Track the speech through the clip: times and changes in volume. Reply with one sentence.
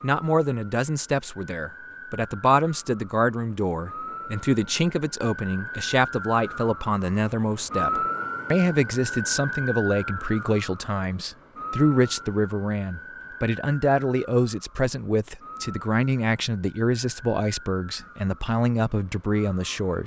You can hear the speech from 0.0 to 20.0 s, at a steady volume.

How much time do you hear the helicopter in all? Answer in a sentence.
You can't hear the helicopter here.